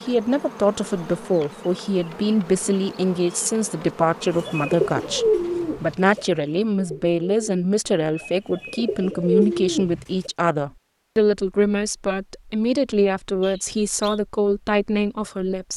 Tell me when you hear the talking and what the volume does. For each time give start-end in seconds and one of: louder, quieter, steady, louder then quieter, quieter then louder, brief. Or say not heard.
0.0-15.7 steady.